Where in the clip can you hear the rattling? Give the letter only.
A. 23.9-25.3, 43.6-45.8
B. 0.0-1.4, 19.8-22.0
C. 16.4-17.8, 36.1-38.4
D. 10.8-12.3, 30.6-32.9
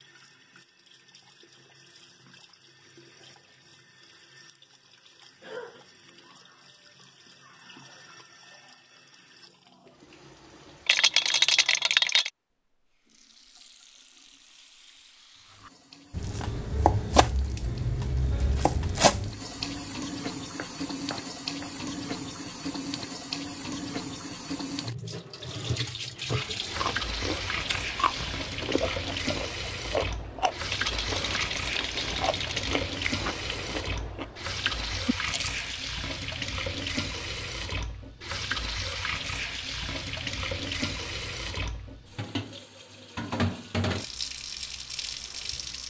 D.